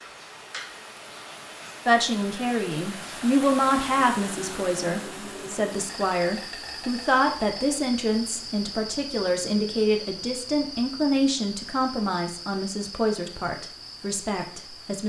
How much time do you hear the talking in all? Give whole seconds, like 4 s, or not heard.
13 s.